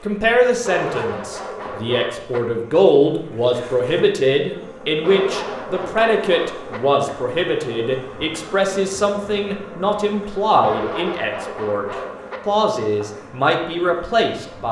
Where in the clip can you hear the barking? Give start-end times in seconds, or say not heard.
0.6-2.4, 5.0-6.8, 10.6-12.4.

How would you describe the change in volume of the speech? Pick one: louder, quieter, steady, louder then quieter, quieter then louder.
steady.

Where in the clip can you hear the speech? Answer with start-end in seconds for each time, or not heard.
0.0-14.6.